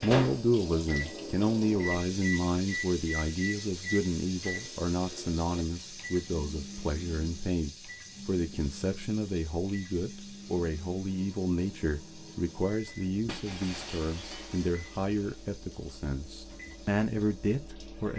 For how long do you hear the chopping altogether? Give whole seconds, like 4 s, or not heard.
not heard.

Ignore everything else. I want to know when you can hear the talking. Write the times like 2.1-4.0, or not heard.
0.0-18.1.